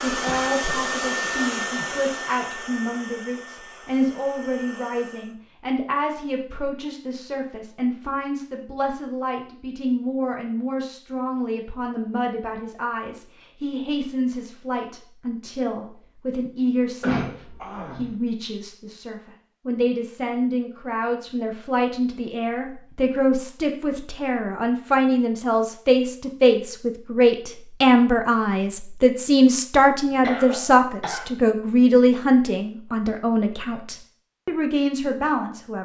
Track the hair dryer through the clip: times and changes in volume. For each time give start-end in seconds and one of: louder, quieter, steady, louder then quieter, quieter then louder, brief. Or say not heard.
0.0-5.3 quieter.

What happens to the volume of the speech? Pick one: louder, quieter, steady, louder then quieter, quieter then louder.
louder.